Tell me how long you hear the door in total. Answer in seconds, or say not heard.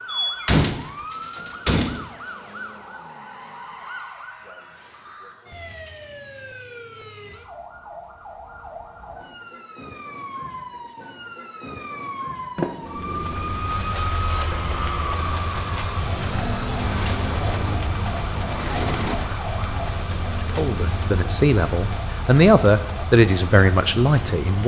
6 s.